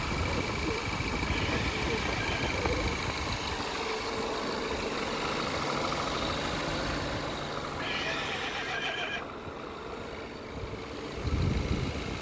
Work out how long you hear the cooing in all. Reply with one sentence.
The cooing can be heard for 3 seconds in total.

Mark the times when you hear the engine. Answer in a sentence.
The engine can be heard from 0.0 to 12.1 s.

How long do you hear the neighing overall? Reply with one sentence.
You can hear the neighing for 3 seconds altogether.